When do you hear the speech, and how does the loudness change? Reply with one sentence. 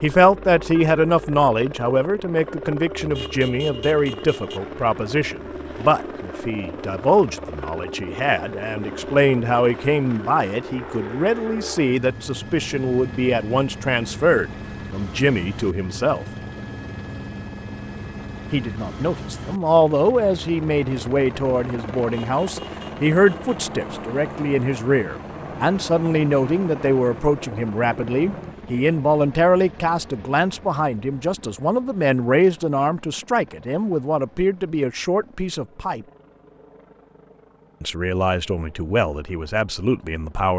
The speech can be heard from 0.0 to 16.2 s, at a steady volume; from 18.5 to 36.0 s, at a steady volume; and briefly from 37.8 to 40.5 s.